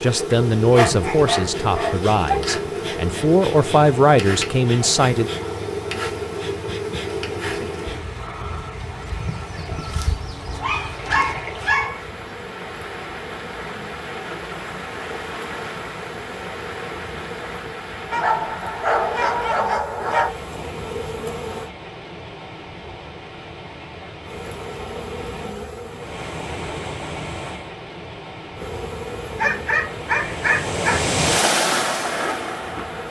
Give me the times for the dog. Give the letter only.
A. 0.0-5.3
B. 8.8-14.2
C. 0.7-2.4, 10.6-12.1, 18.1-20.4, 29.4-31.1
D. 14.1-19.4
C.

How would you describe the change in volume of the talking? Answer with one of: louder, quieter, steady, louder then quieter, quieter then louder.
quieter then louder.